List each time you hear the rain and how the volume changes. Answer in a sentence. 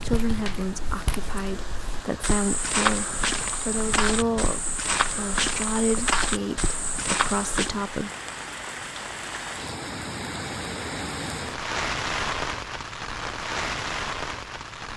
You can hear the rain from 0.0 to 14.9 s, getting louder.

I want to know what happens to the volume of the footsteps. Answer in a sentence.
The volume of the footsteps goes up.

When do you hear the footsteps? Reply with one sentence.
You can hear the footsteps from 0.0 to 7.8 s.